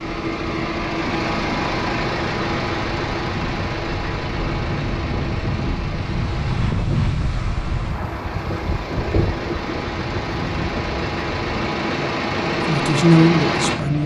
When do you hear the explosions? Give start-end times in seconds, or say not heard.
not heard.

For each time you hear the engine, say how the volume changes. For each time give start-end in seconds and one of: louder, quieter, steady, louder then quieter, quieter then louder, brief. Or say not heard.
0.0-14.0 quieter then louder.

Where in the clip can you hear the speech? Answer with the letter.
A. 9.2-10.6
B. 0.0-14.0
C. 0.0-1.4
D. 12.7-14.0
D.